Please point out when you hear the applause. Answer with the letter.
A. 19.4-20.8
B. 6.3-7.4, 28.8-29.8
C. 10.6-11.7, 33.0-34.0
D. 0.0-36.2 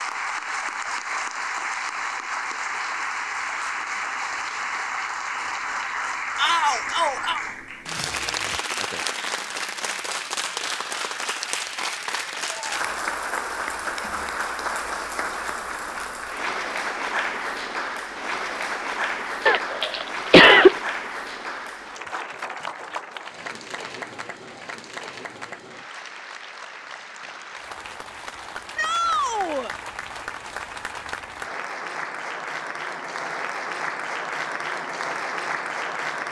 D.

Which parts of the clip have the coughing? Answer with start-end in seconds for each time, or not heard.
19.4-20.8.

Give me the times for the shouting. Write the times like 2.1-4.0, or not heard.
6.3-7.4, 28.8-29.8.